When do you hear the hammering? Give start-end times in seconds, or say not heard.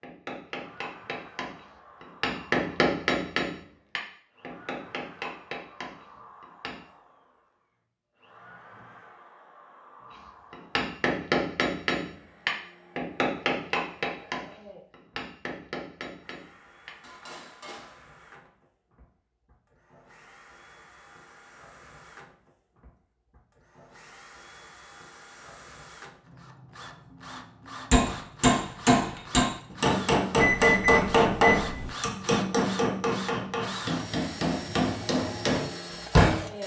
0.0-6.8, 10.5-18.5, 27.9-36.4.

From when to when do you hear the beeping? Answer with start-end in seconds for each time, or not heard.
30.4-31.9.